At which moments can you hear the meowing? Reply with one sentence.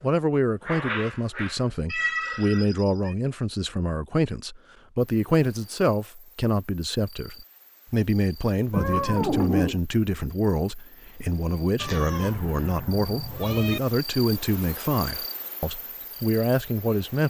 You can hear the meowing from 1.9 to 3.1 s, from 8.7 to 9.8 s and from 11.8 to 13.8 s.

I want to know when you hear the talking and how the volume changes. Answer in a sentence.
The talking can be heard from 0.0 to 17.2 s, at a steady volume.